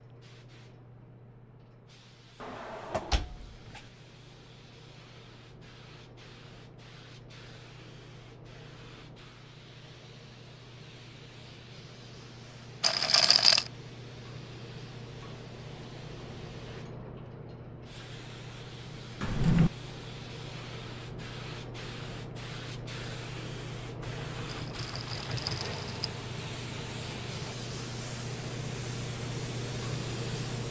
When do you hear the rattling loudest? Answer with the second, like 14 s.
13 s.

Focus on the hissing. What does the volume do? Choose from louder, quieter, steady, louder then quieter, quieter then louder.
louder.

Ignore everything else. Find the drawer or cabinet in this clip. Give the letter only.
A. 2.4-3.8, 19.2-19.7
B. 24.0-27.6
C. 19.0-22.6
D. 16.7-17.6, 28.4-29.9
A.